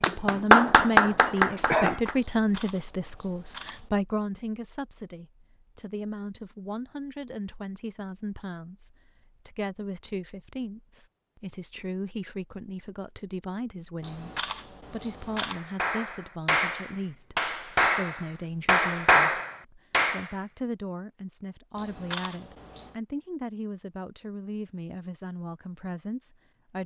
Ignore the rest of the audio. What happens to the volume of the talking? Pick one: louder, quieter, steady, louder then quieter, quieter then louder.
quieter.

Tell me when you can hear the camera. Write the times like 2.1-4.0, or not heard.
2.2-3.9, 14.0-15.6, 21.8-22.9.